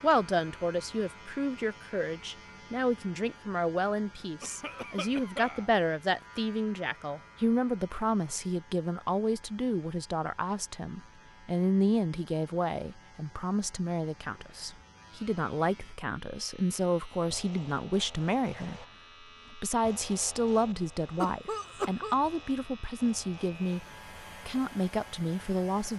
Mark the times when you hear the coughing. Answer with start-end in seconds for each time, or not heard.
4.4-5.7, 21.2-22.1.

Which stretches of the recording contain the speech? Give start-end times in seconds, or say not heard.
0.0-18.9, 19.5-23.9, 24.4-25.9.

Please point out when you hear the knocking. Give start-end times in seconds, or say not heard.
not heard.